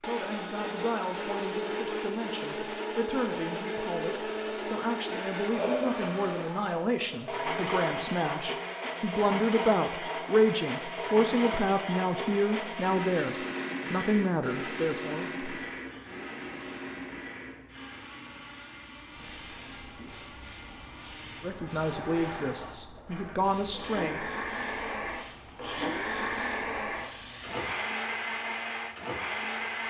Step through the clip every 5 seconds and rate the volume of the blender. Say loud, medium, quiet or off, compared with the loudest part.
loud, loud, loud, medium, medium, loud.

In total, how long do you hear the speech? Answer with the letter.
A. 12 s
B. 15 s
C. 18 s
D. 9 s
C.